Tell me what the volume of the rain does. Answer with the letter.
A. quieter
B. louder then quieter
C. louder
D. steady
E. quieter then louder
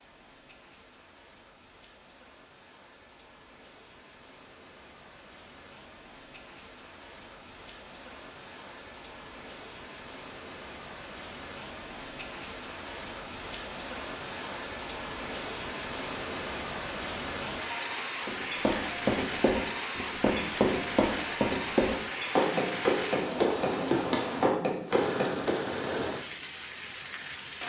C.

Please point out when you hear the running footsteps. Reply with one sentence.
The running footsteps can be heard from 18.2 to 25.8 s.